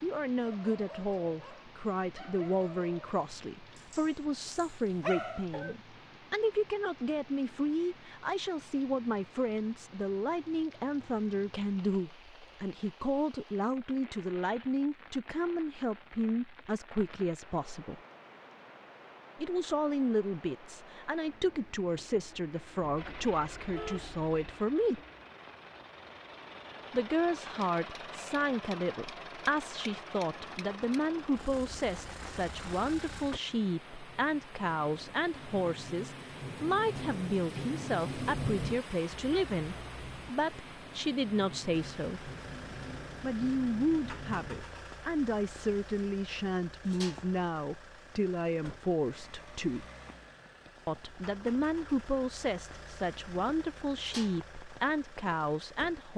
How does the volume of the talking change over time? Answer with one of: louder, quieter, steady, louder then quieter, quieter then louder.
steady.